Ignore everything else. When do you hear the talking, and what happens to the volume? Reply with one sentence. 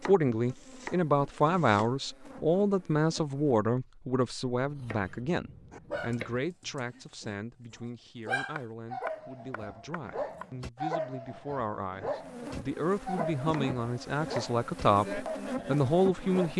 The talking can be heard from 0.0 to 16.5 s, getting quieter then louder.